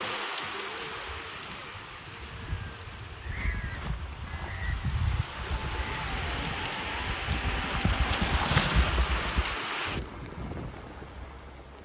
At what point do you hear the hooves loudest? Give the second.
9 s.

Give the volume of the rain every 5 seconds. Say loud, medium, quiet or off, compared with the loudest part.
medium, loud, medium.